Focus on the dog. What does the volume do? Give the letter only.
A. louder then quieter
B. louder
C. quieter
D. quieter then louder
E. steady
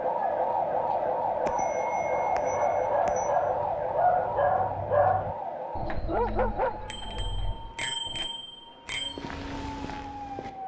A.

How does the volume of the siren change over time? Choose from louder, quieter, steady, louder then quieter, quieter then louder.
quieter.